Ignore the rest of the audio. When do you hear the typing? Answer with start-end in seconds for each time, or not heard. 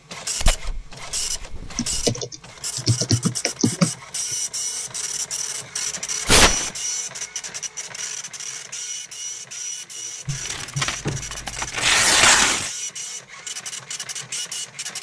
1.8-4.3.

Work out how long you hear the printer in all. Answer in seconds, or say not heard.
15 s.